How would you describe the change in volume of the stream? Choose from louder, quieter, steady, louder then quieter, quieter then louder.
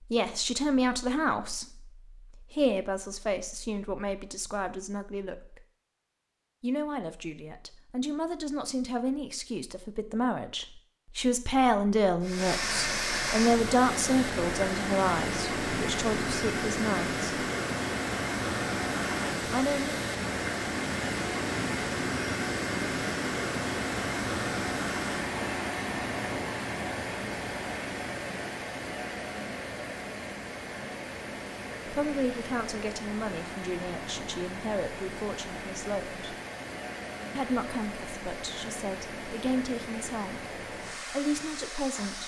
quieter.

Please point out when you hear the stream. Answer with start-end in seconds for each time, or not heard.
12.2-42.2.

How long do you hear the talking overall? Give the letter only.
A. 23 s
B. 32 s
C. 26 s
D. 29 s
C.